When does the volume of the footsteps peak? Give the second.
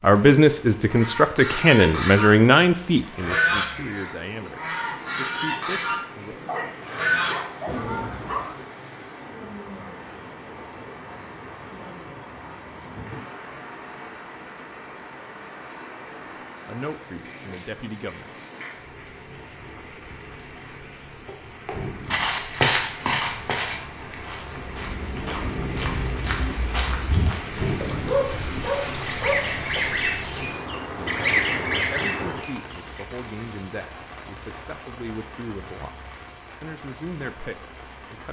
23 s.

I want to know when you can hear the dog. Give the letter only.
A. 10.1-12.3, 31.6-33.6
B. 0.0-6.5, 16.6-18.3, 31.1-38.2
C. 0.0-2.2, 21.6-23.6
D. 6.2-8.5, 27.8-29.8
D.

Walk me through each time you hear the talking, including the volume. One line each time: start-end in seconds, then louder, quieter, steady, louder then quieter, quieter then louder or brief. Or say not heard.
0.0-6.5 quieter
16.6-18.3 brief
31.1-38.2 steady.